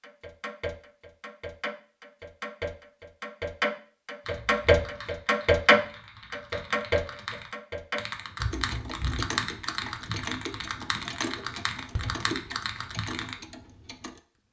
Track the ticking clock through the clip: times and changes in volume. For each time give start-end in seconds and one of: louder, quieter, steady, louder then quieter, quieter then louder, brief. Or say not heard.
0.0-14.4 louder then quieter.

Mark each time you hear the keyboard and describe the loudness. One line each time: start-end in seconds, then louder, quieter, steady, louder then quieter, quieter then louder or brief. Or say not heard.
4.2-13.3 louder.